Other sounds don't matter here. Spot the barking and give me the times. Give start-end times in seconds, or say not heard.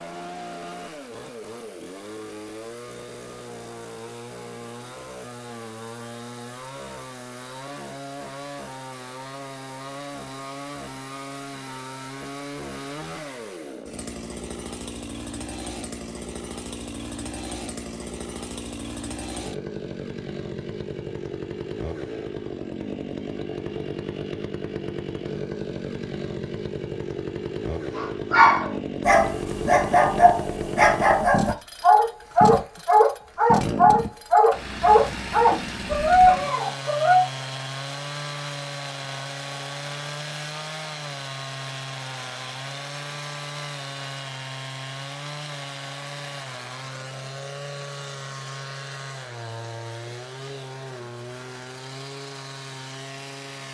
27.9-37.2.